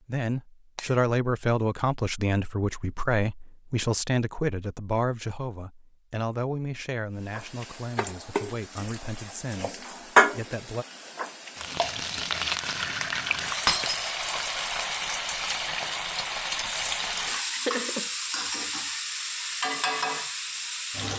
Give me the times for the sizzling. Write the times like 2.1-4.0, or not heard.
7.2-21.1.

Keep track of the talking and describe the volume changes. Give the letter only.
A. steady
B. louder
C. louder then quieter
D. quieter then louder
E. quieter
E.